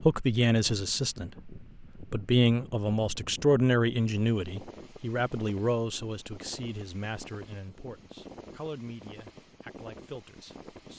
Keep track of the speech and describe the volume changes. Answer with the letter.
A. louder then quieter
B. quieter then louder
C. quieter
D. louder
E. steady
C.